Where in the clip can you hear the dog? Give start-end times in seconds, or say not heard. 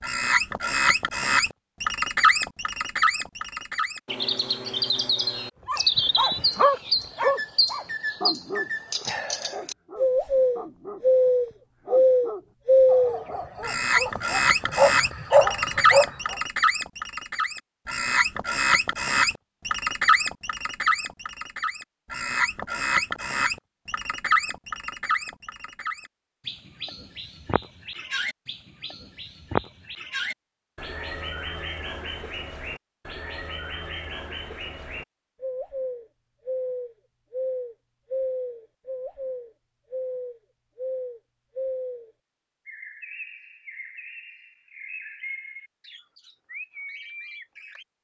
5.7-16.4.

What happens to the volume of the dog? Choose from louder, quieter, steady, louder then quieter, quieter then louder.
quieter then louder.